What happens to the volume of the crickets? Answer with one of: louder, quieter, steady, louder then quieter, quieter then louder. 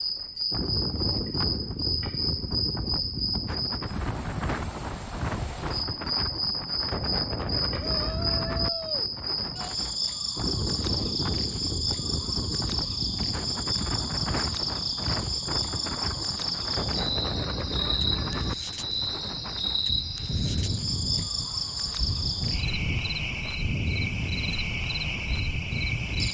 steady.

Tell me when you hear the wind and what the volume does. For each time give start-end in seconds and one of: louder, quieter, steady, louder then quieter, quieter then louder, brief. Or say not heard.
0.1-26.2 steady.